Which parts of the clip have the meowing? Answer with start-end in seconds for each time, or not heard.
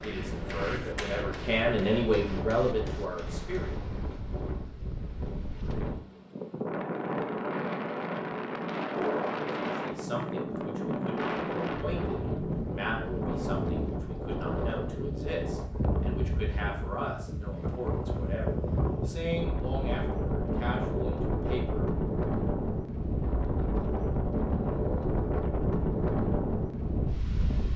not heard.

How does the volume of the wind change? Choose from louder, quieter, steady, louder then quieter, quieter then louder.
louder.